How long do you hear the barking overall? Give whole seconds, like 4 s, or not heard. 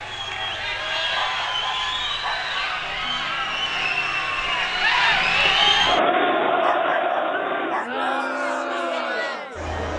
3 s.